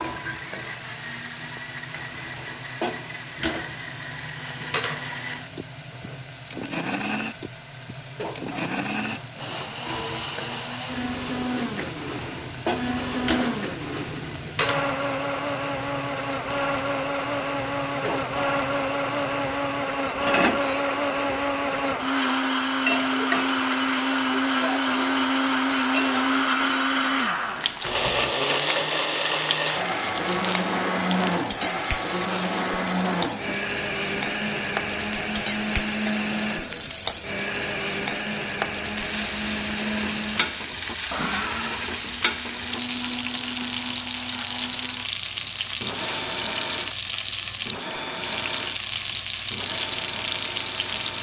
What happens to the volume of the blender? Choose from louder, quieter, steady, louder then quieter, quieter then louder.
louder then quieter.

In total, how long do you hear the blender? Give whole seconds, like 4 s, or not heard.
51 s.